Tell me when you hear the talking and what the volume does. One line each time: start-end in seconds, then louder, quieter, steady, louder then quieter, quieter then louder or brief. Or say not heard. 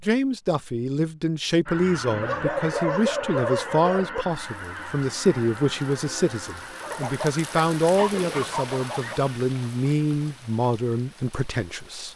0.0-12.1 steady.